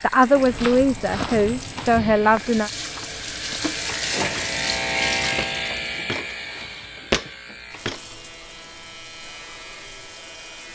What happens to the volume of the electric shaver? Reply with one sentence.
The volume of the electric shaver goes up, then down.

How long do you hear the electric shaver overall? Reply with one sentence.
The electric shaver can be heard for 11 seconds in total.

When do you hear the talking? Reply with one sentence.
You can hear the talking from 0.0 to 2.7 s.